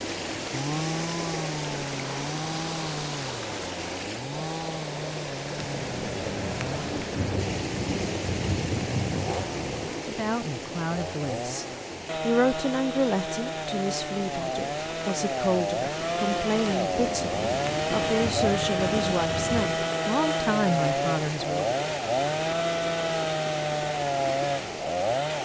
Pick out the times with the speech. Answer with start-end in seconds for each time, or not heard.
10.1-21.8.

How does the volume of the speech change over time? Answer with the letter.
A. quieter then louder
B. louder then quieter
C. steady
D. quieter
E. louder
C.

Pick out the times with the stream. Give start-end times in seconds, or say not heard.
0.0-25.4.